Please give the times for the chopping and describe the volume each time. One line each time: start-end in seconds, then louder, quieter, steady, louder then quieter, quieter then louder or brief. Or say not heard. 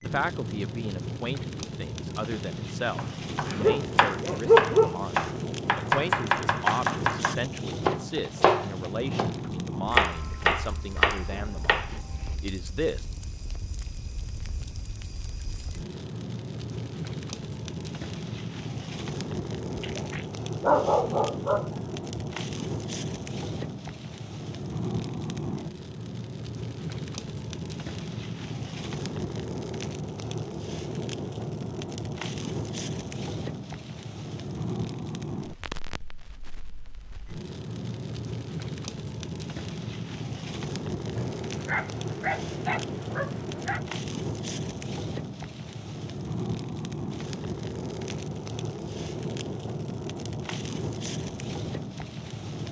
3.0-12.3 steady.